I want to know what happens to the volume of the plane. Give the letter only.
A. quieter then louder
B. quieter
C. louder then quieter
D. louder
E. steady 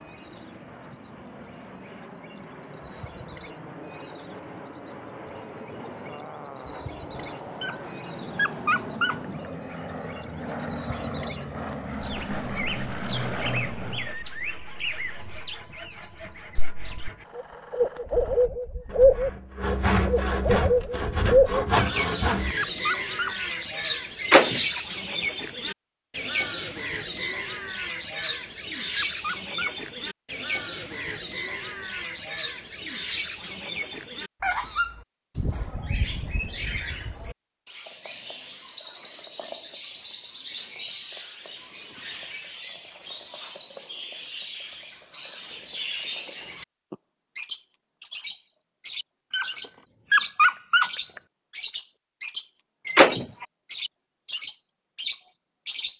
D.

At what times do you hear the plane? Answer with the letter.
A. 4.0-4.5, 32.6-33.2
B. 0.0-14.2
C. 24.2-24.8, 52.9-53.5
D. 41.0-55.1
B.